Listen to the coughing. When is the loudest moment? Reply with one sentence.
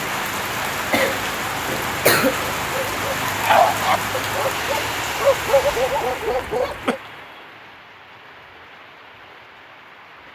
The volume of the coughing peaks at 2 seconds.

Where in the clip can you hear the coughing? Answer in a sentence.
You can hear the coughing from 0.9 to 2.4 s and from 6.3 to 7.0 s.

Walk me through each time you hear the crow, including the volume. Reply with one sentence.
You can't hear the crow here.